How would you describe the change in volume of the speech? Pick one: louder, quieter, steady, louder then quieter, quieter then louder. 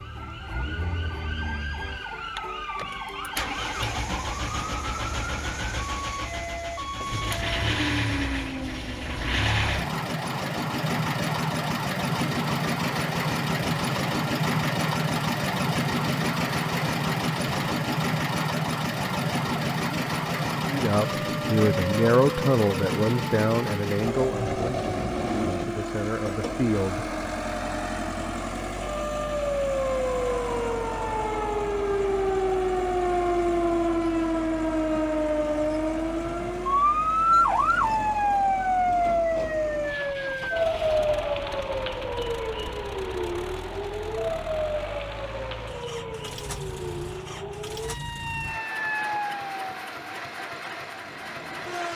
quieter then louder.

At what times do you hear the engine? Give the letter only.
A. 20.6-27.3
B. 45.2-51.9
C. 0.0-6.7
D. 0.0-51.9
D.